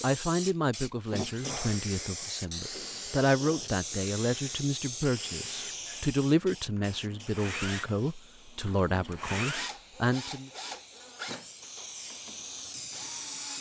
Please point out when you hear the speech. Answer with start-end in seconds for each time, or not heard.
0.0-10.5.